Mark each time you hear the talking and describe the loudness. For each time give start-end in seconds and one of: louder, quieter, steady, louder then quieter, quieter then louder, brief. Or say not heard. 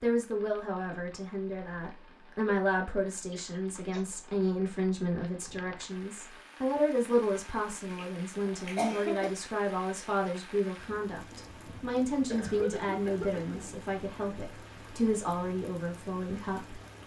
0.0-16.8 steady.